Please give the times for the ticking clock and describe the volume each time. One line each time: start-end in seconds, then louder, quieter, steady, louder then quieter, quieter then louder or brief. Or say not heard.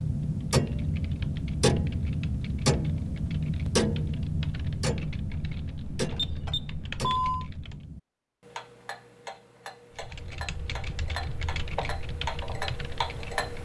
0.0-13.5 quieter then louder.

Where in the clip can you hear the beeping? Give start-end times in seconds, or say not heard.
6.1-7.5.